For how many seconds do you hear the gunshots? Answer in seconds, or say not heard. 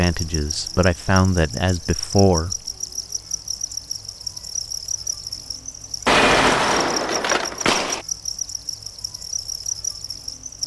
2 s.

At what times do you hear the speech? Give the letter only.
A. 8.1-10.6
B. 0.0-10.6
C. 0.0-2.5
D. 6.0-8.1
C.